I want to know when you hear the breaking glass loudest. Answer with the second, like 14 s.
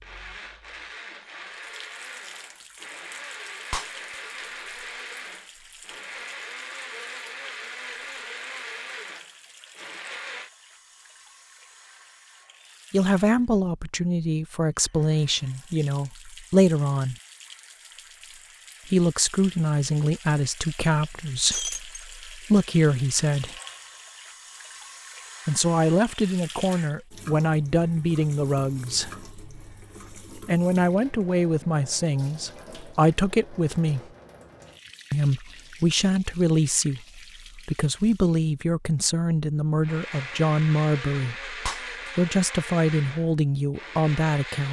22 s.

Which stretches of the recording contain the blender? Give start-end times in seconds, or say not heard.
0.0-10.5, 39.8-44.6.